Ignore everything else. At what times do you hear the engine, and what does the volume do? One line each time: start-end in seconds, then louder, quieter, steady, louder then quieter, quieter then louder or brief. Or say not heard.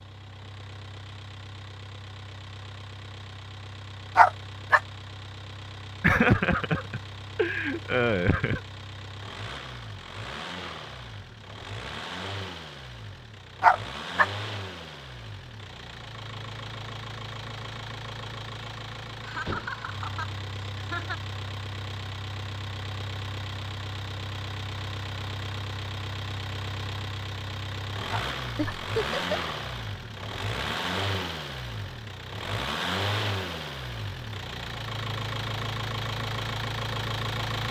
0.0-37.6 louder.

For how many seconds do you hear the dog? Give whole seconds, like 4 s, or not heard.
2 s.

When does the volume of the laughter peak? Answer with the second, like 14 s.
6 s.